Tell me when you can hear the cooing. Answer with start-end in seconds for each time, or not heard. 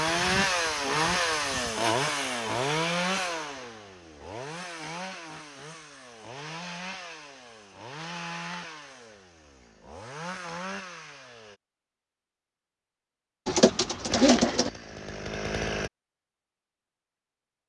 13.4-14.7.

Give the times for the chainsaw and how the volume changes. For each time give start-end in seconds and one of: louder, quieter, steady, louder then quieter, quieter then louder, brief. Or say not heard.
0.0-11.6 quieter
14.1-15.9 brief.